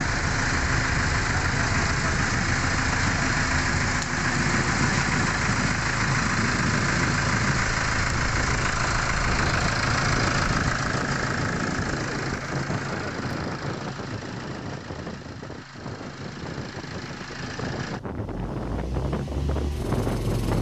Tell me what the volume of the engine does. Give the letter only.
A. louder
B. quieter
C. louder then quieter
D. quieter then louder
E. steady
B.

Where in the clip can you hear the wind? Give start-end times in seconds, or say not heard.
0.0-20.5.